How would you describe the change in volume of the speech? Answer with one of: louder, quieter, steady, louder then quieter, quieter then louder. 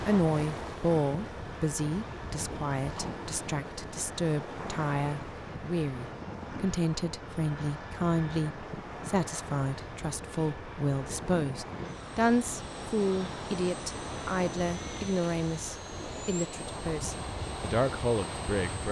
steady.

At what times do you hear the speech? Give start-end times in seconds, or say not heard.
0.0-18.8.